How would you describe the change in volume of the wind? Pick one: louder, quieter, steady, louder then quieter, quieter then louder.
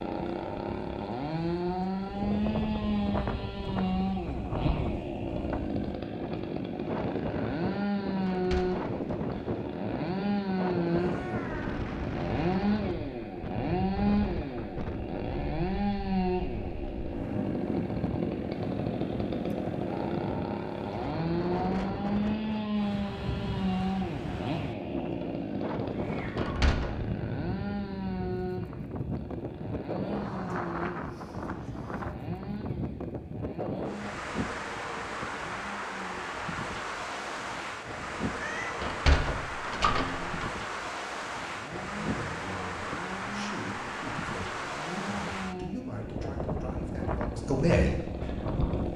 steady.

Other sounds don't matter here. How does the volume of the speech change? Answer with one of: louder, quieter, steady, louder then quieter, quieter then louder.
louder.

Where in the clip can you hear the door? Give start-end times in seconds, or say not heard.
8.2-9.2, 26.4-27.1, 38.8-40.4.